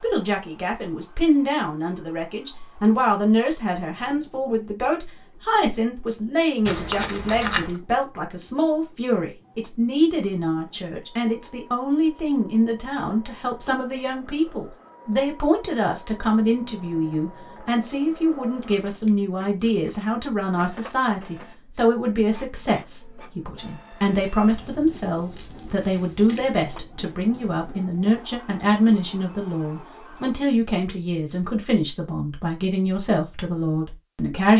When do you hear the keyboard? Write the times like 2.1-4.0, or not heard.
not heard.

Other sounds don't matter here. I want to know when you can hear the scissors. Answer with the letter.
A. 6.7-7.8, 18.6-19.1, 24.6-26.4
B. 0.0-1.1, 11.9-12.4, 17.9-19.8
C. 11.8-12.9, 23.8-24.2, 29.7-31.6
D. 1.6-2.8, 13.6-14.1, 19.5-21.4
A.